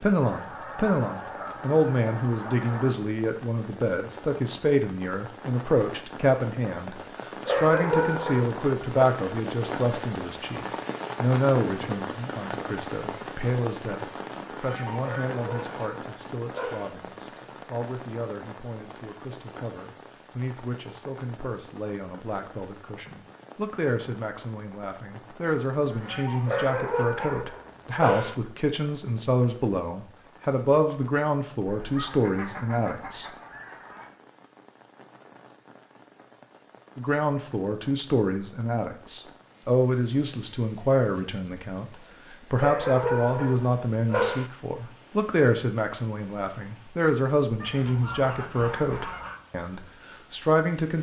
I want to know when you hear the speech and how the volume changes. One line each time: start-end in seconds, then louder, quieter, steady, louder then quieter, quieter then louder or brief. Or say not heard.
0.0-33.3 quieter then louder
37.0-50.9 steady.